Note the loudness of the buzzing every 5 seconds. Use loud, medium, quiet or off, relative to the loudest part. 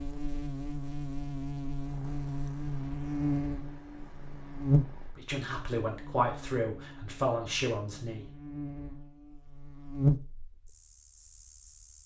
loud, quiet, loud.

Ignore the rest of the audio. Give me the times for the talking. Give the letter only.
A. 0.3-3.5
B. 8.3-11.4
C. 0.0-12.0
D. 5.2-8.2
D.